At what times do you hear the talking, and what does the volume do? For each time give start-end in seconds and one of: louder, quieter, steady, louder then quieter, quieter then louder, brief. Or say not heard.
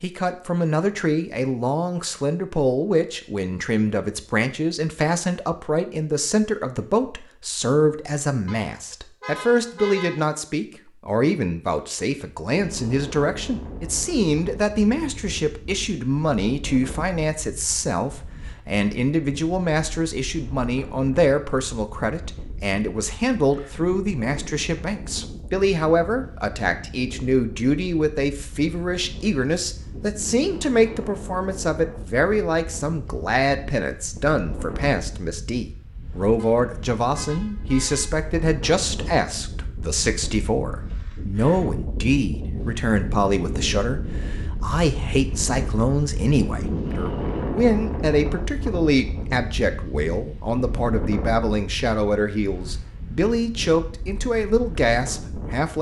0.0-55.7 steady.